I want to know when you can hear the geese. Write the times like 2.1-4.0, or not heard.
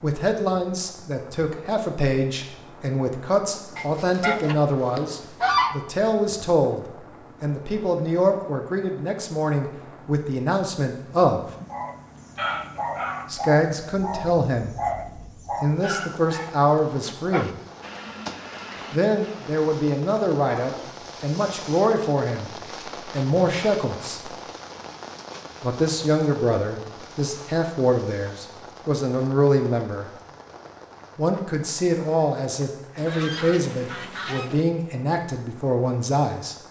3.8-5.8, 33.0-34.6.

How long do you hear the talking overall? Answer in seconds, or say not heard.
30 s.